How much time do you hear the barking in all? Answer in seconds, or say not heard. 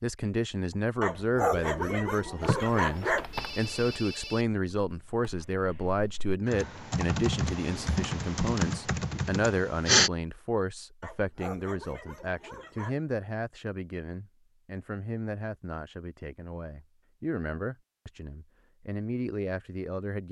4 s.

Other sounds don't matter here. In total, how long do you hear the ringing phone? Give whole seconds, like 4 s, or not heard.
2 s.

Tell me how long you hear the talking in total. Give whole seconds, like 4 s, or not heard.
20 s.